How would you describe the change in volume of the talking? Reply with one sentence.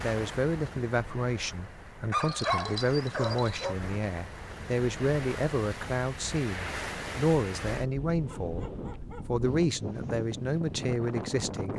The loudness of the talking stays about the same.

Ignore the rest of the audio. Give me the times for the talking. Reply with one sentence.
You can hear the talking from 0.0 to 11.7 s.